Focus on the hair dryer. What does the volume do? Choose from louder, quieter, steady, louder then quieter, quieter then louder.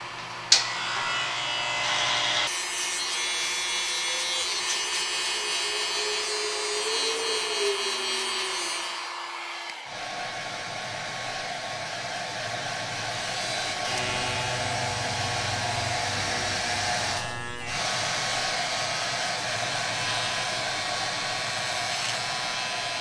louder.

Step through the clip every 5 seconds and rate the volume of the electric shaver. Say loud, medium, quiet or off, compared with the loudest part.
loud, loud, medium, medium, medium.